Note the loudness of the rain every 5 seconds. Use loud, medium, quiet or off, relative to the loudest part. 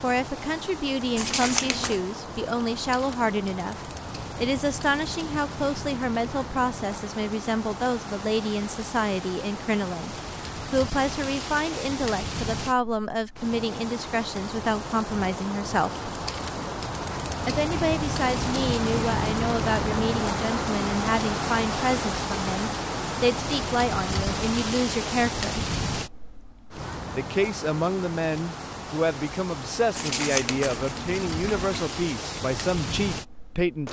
medium, medium, medium, loud, loud, medium, medium.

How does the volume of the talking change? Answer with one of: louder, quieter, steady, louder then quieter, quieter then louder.
steady.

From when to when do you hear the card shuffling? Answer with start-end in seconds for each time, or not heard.
1.1-2.0, 29.9-31.9.